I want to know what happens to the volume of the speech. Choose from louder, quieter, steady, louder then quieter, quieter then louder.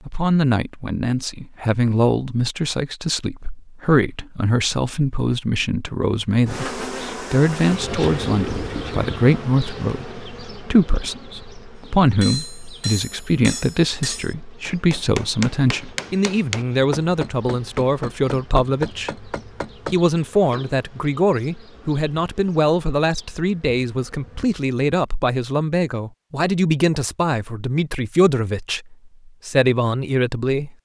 steady.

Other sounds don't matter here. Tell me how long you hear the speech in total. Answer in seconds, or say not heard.
30 s.